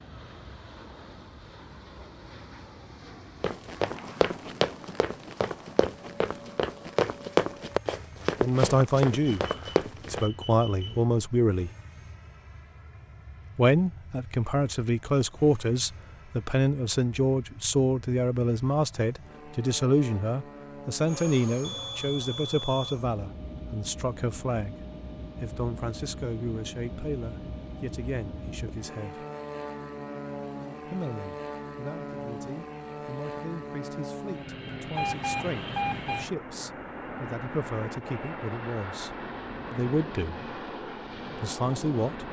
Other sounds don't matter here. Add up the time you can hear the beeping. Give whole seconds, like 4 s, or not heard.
4 s.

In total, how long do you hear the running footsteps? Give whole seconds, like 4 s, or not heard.
7 s.